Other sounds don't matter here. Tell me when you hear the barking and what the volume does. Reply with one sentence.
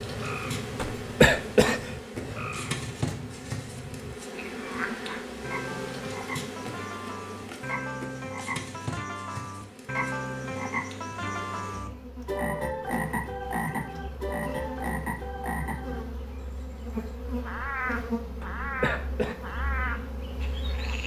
The barking can't be heard in this clip.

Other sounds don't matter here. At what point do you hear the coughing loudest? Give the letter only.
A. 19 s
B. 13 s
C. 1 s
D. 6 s
C.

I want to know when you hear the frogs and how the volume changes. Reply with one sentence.
The frogs can be heard from 0.0 to 21.0 s, getting louder.